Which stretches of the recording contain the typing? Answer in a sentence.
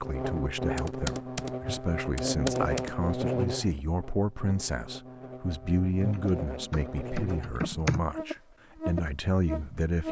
The typing can be heard from 0.8 to 2.9 s and from 6.0 to 8.0 s.